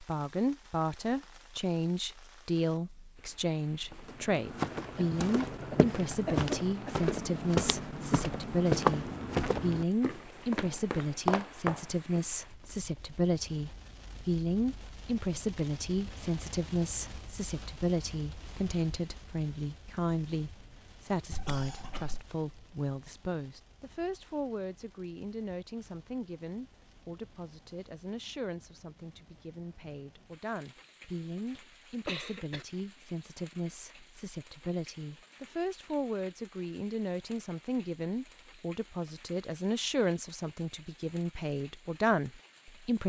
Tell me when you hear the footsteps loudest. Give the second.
9 s.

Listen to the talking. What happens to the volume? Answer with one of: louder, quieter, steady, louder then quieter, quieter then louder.
quieter then louder.